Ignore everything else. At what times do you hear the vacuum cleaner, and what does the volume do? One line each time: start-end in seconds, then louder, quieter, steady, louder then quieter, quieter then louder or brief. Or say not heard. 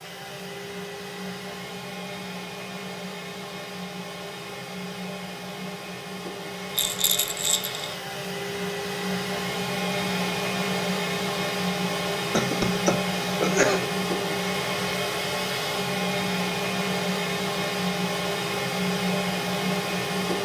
0.0-20.4 louder.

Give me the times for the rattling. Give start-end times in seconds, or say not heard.
6.8-7.8.